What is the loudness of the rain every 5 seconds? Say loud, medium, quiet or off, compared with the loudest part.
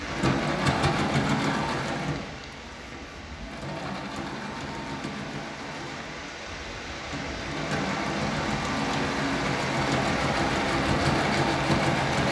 medium, loud, loud.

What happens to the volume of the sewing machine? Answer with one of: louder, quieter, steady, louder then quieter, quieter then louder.
quieter then louder.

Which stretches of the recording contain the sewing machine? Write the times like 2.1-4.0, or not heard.
0.0-12.2.